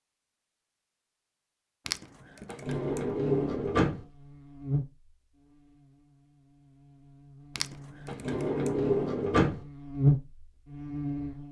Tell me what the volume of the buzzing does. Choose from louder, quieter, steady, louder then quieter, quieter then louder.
quieter then louder.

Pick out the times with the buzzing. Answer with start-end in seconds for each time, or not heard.
2.6-11.4.